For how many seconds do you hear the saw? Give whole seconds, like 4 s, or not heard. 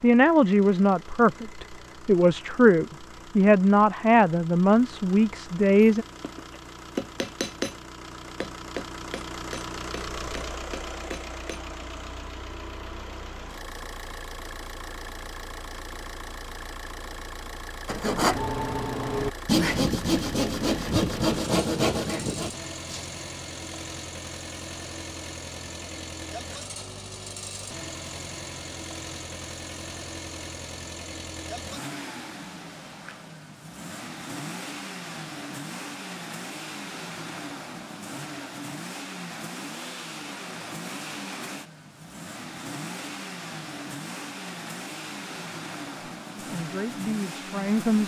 5 s.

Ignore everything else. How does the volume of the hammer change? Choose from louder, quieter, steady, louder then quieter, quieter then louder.
quieter.